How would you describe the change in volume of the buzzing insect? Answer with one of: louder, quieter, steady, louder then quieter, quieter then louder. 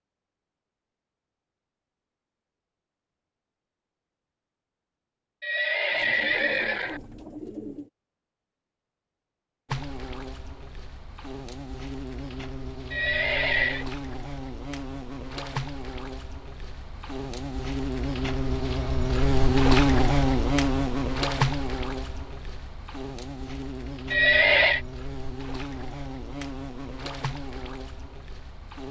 louder then quieter.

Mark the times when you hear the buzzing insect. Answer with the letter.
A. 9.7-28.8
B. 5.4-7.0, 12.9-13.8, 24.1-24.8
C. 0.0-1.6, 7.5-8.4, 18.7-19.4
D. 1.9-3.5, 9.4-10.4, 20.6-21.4
A.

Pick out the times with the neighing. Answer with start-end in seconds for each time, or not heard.
5.4-7.0, 12.9-13.8, 24.1-24.8.